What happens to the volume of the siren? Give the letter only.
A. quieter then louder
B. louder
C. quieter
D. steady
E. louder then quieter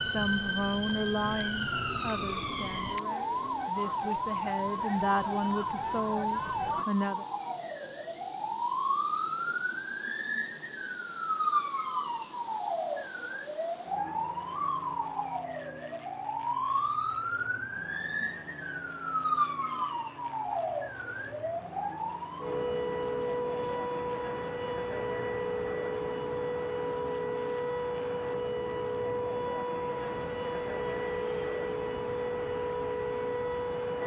D.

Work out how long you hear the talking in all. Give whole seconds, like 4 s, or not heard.
7 s.